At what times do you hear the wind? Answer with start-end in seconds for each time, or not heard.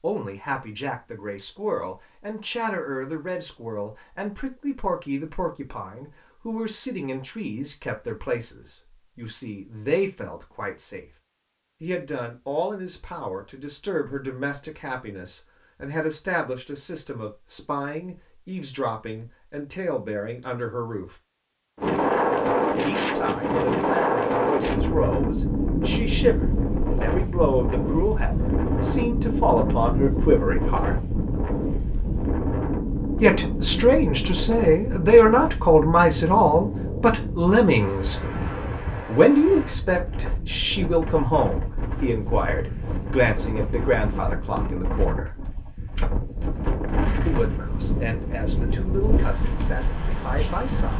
21.8-50.9.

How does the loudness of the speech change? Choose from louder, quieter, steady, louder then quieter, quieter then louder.
louder then quieter.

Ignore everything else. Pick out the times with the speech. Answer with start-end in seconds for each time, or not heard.
0.0-11.1, 11.8-21.1, 22.7-30.9, 33.2-38.2, 39.0-45.4, 47.2-50.9.